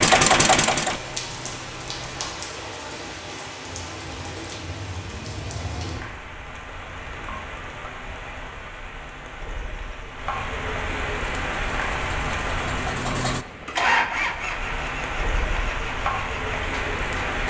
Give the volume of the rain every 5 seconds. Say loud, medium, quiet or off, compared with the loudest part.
medium, medium, loud, loud.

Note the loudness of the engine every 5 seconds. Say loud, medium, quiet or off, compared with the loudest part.
loud, off, medium, quiet.